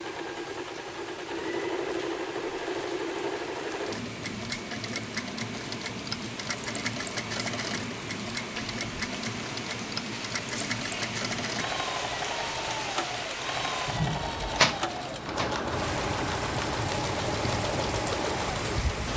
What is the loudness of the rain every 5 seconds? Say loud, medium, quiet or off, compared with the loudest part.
medium, medium, loud, loud.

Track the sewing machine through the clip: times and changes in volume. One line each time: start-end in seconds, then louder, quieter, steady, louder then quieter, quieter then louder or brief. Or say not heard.
0.0-19.1 steady.